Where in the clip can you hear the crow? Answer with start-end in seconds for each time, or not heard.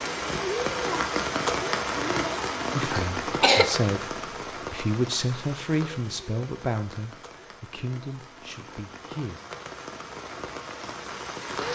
not heard.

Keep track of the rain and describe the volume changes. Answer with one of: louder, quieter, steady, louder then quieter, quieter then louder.
quieter then louder.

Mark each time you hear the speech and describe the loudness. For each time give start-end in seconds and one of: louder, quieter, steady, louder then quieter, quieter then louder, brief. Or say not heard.
2.8-9.4 quieter.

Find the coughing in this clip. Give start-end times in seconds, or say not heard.
2.9-3.8.